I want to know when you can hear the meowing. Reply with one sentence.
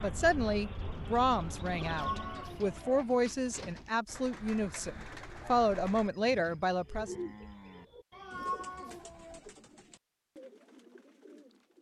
The meowing can be heard from 1.8 to 3.0 s and from 8.1 to 9.4 s.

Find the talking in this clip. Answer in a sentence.
The talking can be heard from 0.0 to 7.2 s.